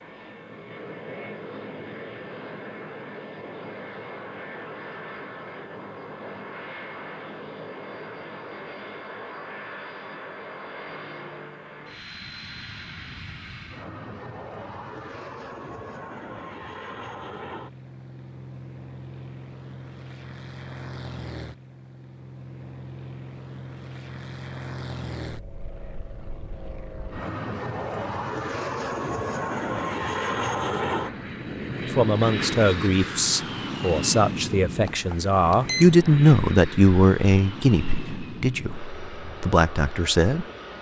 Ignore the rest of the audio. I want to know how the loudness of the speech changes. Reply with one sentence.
The volume of the speech goes up, then down.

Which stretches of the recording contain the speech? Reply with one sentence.
The speech can be heard from 31.9 to 40.5 s.